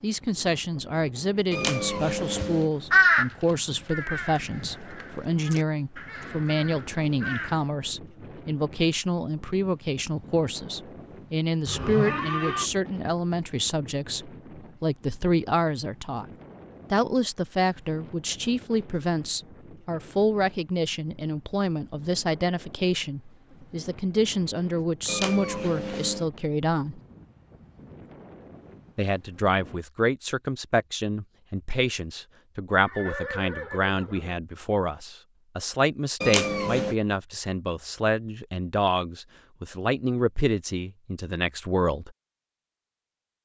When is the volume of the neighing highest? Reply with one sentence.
The loudest moment of the neighing is at 12 seconds.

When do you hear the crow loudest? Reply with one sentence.
The loudest moment of the crow is at 3 seconds.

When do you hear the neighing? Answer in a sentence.
You can hear the neighing from 11.7 to 12.7 s and from 32.8 to 34.4 s.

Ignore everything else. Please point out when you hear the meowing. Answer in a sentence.
You can hear the meowing from 1.5 to 2.7 s, from 25.1 to 26.3 s and from 36.2 to 37.0 s.